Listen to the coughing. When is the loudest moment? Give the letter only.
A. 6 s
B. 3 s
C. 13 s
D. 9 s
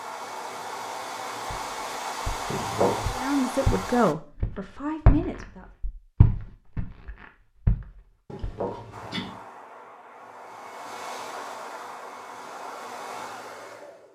B.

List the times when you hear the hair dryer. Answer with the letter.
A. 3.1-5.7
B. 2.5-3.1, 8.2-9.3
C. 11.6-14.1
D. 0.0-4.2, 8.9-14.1
D.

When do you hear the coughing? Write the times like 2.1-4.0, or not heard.
2.5-3.1, 8.2-9.3.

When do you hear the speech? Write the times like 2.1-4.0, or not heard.
3.1-5.7.